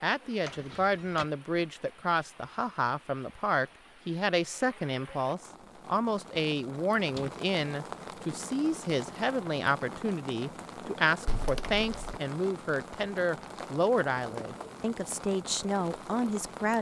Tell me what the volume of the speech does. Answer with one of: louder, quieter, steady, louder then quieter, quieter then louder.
steady.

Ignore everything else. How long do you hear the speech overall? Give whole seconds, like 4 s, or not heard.
17 s.